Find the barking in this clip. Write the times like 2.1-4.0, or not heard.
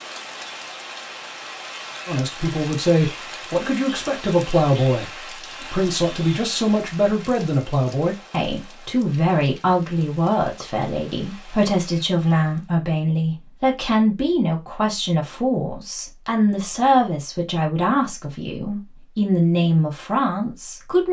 not heard.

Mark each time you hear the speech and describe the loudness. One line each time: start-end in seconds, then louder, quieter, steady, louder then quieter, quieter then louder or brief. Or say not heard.
2.0-21.0 steady.